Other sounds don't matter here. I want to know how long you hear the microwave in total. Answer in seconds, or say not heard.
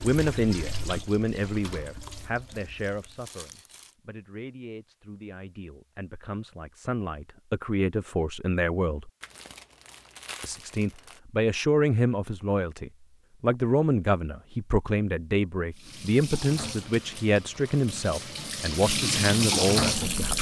not heard.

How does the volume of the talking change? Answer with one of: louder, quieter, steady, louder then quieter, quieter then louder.
quieter then louder.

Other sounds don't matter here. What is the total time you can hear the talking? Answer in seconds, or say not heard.
19 s.